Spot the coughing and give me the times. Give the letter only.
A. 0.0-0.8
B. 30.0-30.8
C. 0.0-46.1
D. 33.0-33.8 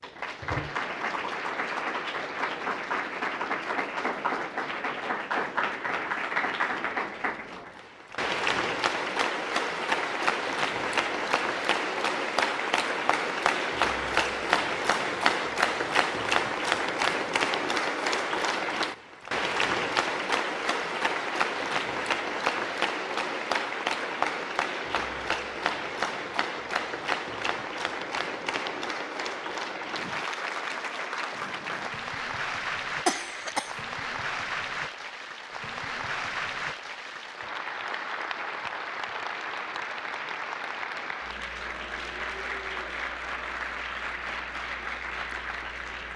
D.